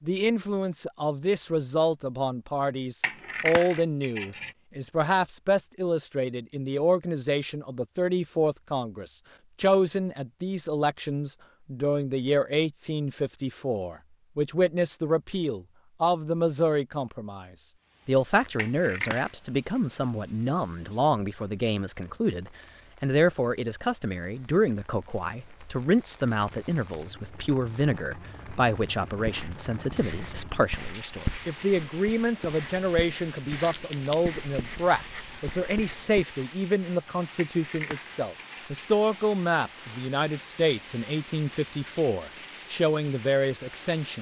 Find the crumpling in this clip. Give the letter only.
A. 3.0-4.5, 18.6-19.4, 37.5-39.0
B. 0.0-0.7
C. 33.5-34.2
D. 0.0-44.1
C.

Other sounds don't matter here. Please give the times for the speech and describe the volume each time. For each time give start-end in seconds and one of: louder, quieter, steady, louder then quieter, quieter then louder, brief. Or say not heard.
0.0-44.1 steady.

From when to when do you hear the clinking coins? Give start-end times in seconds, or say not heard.
3.0-4.5, 18.6-19.4, 37.5-39.0.